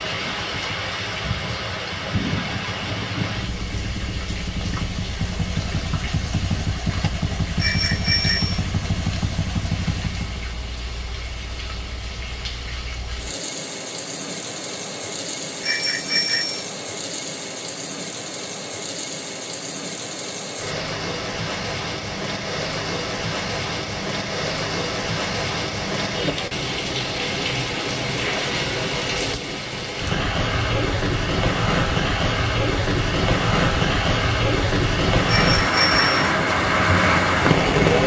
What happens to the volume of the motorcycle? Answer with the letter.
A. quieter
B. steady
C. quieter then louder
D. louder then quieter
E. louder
E.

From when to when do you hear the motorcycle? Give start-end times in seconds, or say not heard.
0.0-10.5.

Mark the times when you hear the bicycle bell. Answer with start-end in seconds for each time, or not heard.
7.5-8.6, 15.6-16.6, 35.2-36.3.